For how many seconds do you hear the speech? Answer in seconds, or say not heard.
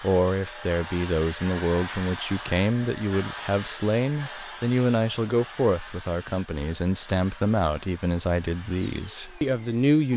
10 s.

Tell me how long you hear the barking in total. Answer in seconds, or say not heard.
not heard.